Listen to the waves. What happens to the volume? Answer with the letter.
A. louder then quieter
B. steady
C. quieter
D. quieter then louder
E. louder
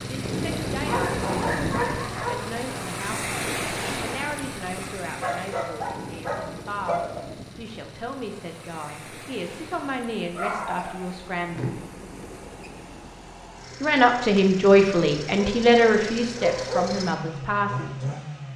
C.